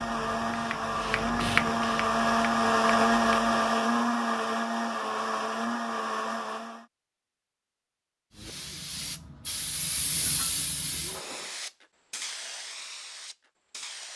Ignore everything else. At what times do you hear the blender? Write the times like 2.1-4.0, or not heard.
0.0-6.8.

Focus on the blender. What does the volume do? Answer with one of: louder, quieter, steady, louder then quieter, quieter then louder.
louder then quieter.